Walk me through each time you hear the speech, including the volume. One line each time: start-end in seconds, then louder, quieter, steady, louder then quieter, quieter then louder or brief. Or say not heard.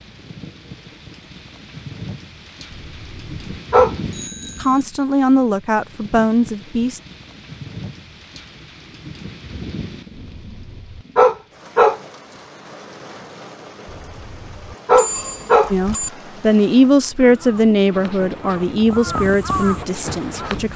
4.6-7.0 brief
15.7-20.7 quieter.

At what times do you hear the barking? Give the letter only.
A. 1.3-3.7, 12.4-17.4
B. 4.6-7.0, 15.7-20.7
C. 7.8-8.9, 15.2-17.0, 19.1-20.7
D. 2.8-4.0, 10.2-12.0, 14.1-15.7
D.